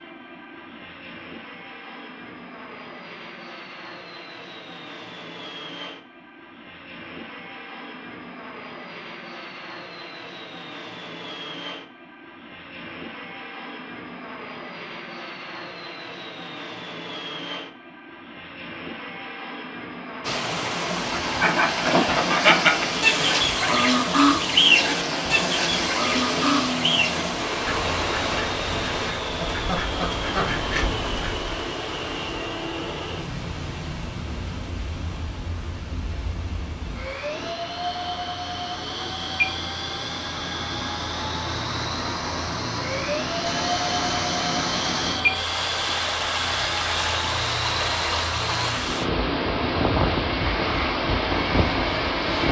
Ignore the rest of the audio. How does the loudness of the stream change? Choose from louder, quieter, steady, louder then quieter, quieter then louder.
quieter then louder.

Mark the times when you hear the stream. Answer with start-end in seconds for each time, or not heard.
20.2-52.4.